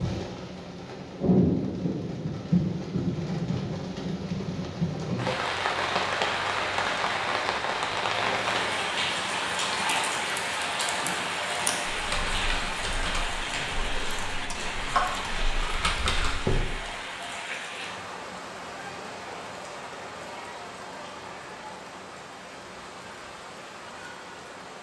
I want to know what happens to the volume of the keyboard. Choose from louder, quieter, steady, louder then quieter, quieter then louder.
quieter then louder.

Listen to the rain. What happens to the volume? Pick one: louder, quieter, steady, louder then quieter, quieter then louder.
quieter.